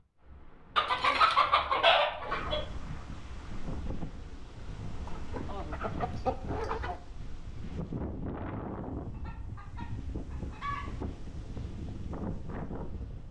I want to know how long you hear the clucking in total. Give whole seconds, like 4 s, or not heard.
6 s.